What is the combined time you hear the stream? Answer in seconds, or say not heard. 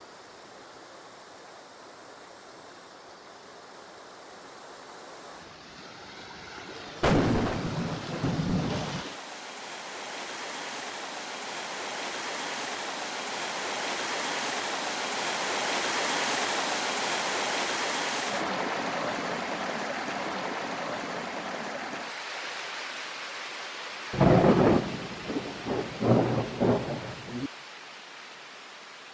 29 s.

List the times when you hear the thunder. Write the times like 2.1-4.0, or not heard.
7.0-9.1, 24.1-27.5.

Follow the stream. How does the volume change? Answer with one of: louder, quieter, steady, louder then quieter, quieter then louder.
louder then quieter.